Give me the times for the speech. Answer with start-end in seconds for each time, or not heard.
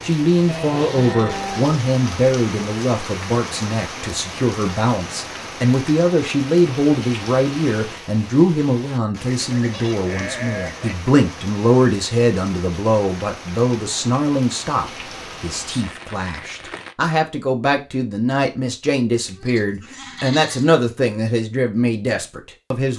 0.0-22.9.